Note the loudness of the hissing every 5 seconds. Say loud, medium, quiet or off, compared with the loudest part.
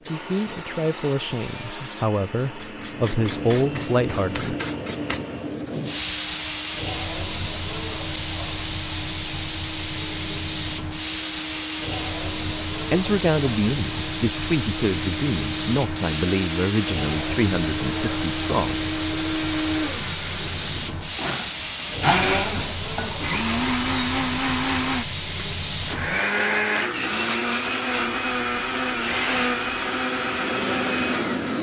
medium, loud, loud, loud, loud, loud, loud.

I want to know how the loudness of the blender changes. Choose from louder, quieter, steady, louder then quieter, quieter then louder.
louder.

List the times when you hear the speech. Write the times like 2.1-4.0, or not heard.
0.1-4.5, 12.8-18.8.